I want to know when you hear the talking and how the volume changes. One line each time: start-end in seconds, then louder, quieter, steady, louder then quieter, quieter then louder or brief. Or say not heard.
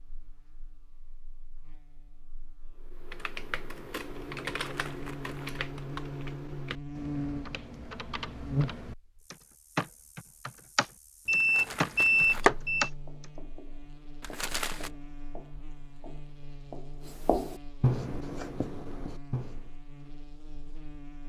not heard.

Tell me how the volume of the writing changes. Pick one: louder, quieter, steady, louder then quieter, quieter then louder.
louder then quieter.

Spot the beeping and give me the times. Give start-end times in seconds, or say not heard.
11.2-12.9.